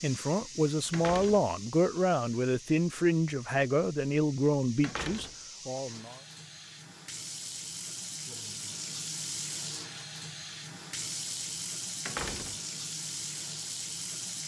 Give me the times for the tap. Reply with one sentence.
You can hear the tap from 0.0 to 14.4 s.